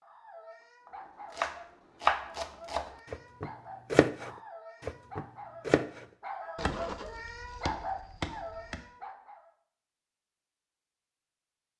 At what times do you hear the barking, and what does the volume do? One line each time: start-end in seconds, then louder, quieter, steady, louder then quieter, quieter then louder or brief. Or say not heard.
0.0-9.5 louder.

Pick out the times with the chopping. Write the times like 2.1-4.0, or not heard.
0.8-8.8.